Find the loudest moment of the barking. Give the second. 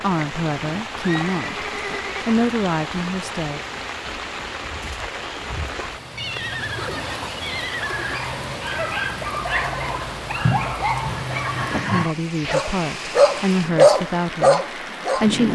14 s.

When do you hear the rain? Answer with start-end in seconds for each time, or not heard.
0.0-15.4.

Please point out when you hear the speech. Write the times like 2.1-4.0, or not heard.
0.0-1.6, 2.2-3.6, 11.9-15.4.